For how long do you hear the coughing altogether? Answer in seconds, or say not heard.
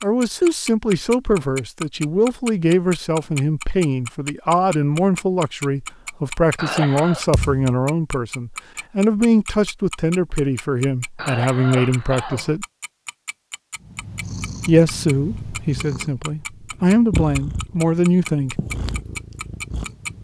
2 s.